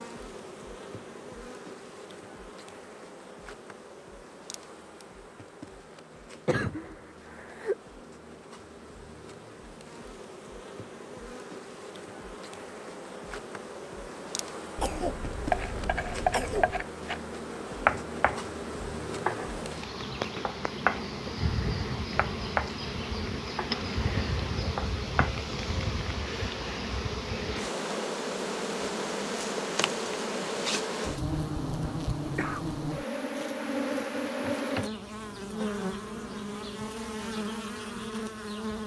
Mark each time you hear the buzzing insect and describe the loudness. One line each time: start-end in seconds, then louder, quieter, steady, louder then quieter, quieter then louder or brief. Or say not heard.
0.0-38.8 louder.